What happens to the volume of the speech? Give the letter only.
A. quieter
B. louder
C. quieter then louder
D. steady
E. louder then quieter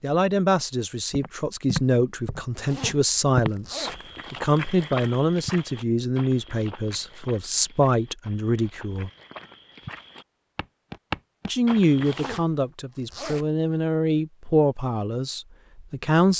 D.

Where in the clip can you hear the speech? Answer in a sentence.
The speech can be heard from 0.0 to 9.1 s and from 11.4 to 16.3 s.